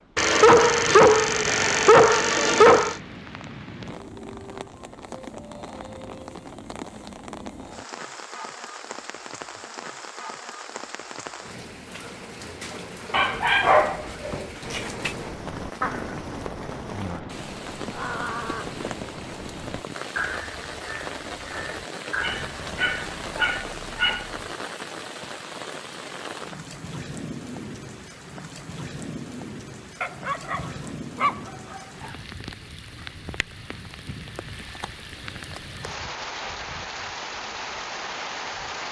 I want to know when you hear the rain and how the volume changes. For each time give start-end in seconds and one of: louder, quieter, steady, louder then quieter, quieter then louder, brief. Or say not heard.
0.0-38.8 steady.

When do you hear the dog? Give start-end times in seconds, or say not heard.
0.1-3.0, 13.1-15.2, 22.2-24.4, 30.0-32.1.